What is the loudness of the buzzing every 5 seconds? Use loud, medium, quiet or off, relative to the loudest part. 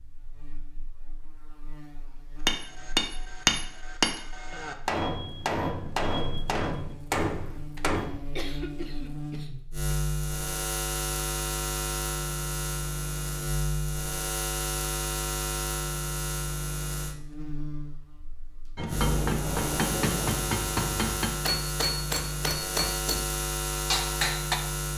quiet, medium, loud, loud, loud.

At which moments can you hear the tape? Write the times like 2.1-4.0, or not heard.
18.9-20.4.